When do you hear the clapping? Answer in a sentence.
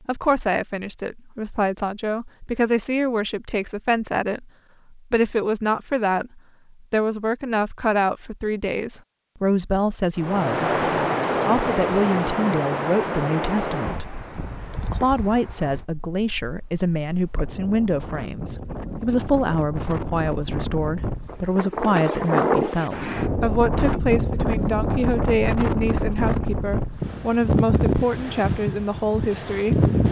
You can't hear the clapping here.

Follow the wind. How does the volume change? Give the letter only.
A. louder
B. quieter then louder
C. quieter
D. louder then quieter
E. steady
B.